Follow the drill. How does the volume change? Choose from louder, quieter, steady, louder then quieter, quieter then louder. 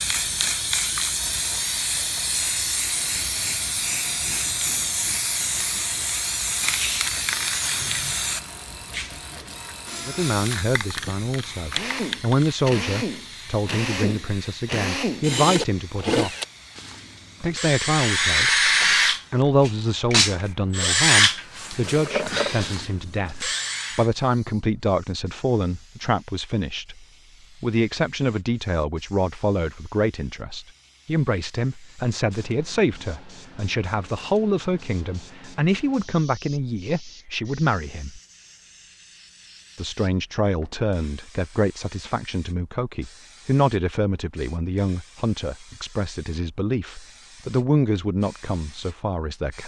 louder.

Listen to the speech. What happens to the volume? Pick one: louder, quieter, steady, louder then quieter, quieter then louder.
steady.